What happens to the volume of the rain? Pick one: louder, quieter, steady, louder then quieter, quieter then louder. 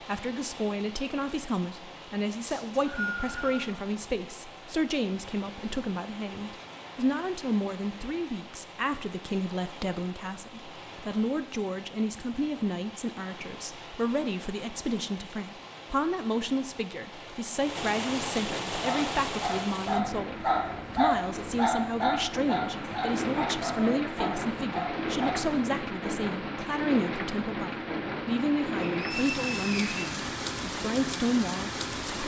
louder.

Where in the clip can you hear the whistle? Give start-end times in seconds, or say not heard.
2.5-3.6, 28.8-30.1.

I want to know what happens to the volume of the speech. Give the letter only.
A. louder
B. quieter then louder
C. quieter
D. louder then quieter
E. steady
E.